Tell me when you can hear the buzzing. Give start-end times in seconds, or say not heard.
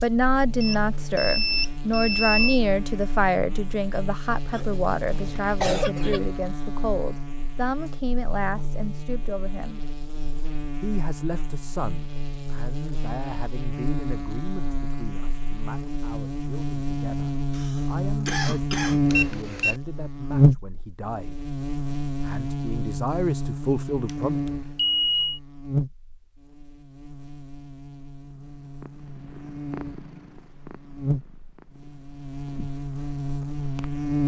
0.0-34.2.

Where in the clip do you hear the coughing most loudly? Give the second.
6 s.